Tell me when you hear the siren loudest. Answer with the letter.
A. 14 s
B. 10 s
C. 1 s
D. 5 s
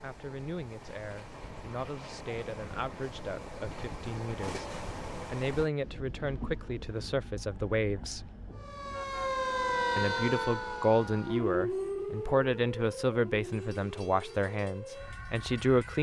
B.